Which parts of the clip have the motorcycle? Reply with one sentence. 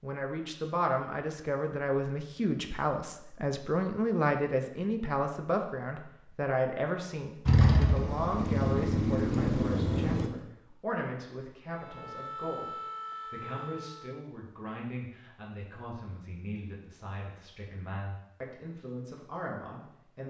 The motorcycle can be heard from 7.5 to 10.3 s.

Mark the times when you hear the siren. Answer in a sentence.
The siren can be heard from 11.7 to 14.2 s.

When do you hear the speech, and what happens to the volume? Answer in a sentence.
The speech can be heard from 0.0 to 20.2 s, getting quieter.